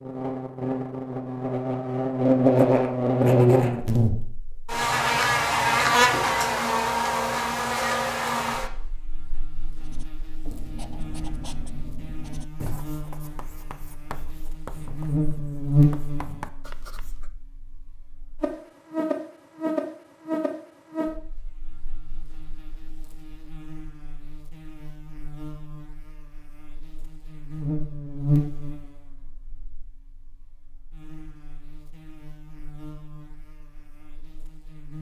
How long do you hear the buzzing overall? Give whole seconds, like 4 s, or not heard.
35 s.